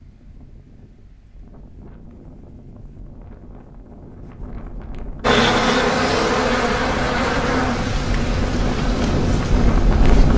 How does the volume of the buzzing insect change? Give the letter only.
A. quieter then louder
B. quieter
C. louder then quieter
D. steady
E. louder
B.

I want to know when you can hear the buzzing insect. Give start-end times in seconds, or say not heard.
5.2-10.3.